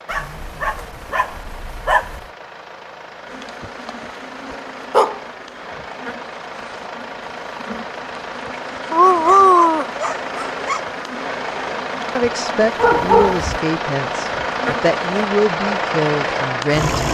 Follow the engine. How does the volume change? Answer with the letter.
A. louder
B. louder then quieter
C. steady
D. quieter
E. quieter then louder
A.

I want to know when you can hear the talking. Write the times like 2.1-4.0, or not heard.
12.2-17.0.